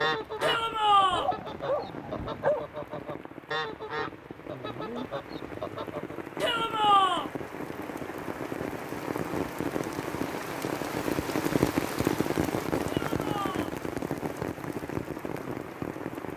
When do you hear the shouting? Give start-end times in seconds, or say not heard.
0.4-1.3, 6.4-7.3, 13.1-13.8.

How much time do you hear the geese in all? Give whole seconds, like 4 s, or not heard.
6 s.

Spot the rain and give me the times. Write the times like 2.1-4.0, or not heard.
0.0-16.3.